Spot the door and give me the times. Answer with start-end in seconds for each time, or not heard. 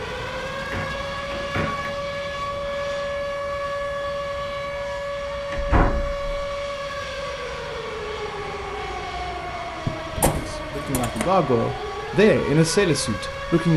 0.6-1.9, 5.5-6.3, 9.8-11.2.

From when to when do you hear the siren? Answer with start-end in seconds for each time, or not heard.
0.0-13.7.